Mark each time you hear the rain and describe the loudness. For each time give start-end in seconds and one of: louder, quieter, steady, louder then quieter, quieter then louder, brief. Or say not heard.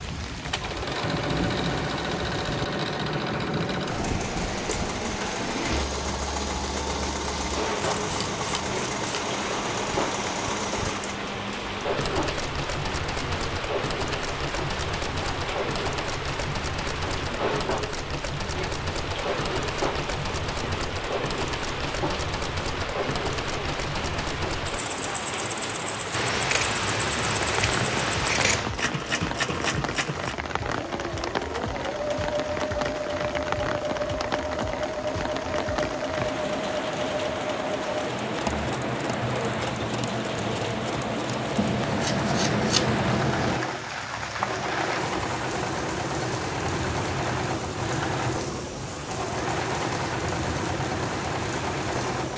0.0-52.3 steady.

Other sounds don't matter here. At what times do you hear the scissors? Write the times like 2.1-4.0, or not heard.
7.8-9.2, 26.1-28.8, 41.5-43.6.